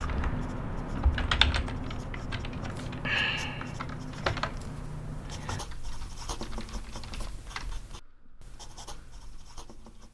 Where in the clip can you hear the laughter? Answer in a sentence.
The laughter can't be heard in this clip.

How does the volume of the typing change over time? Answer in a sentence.
The loudness of the typing goes down.